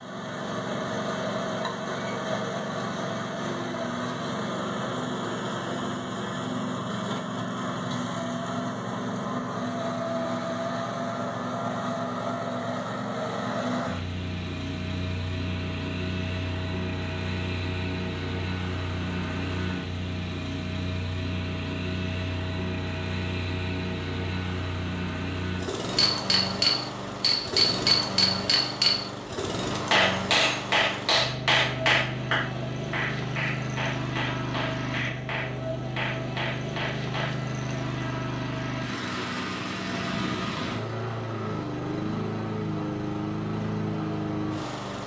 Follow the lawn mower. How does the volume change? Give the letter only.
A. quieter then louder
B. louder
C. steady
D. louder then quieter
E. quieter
C.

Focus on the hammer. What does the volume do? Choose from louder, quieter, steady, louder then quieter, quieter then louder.
quieter.